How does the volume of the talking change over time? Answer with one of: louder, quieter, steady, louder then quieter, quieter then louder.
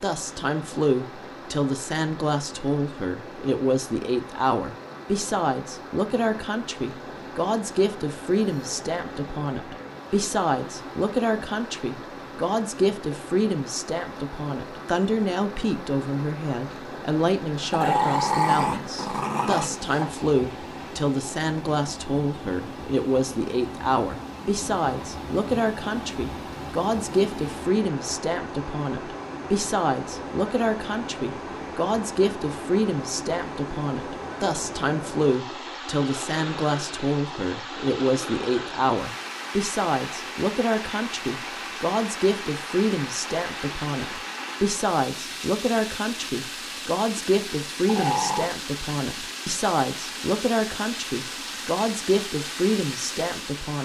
steady.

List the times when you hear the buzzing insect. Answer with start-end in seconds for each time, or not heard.
not heard.